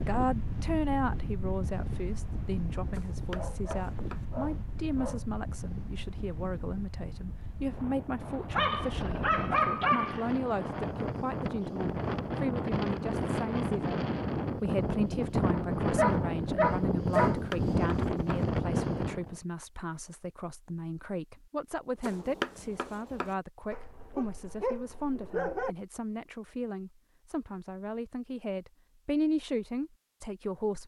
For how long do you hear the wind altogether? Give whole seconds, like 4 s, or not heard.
19 s.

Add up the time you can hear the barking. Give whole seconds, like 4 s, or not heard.
8 s.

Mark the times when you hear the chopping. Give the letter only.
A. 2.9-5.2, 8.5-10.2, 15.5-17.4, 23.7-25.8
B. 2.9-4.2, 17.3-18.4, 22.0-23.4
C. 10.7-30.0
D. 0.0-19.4
B.